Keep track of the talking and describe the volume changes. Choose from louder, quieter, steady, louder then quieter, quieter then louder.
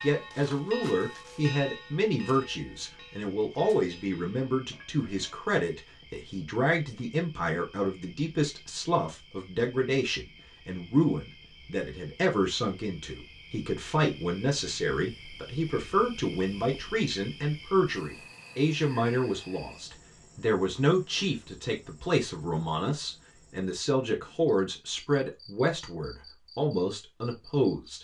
steady.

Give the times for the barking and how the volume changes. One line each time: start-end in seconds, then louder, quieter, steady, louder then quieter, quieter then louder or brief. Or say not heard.
not heard.